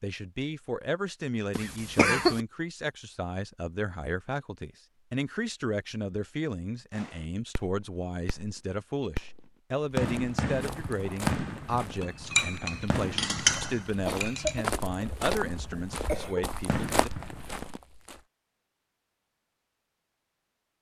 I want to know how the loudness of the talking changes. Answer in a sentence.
The volume of the talking stays about the same.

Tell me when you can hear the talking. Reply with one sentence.
You can hear the talking from 0.0 to 17.1 s.